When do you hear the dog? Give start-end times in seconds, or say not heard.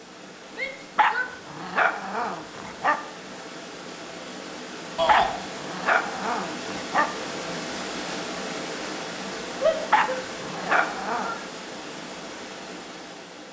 0.9-3.0, 5.0-7.0, 9.9-11.3.